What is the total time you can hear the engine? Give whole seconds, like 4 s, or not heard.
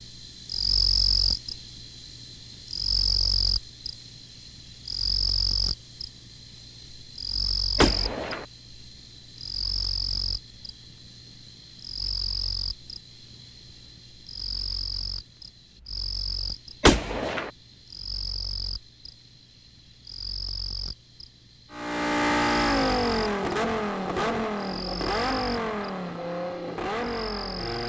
6 s.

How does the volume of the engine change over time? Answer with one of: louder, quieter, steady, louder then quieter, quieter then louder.
quieter.